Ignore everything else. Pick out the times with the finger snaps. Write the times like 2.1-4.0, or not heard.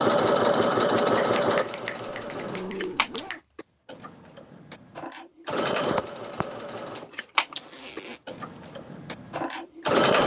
1.1-3.4, 5.9-6.5.